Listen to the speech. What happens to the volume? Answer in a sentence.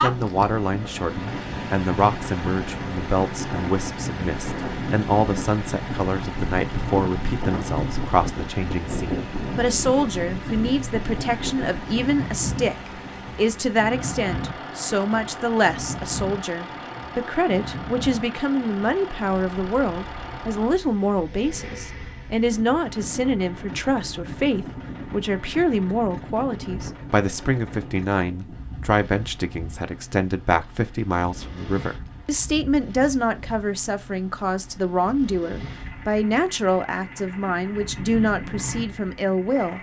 The loudness of the speech stays about the same.